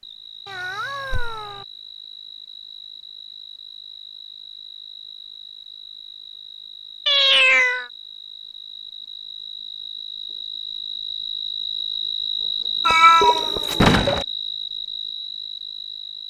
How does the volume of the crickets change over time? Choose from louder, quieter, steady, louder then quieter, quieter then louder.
louder.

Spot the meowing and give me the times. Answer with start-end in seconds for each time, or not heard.
0.5-1.6, 7.0-7.8, 12.8-14.2.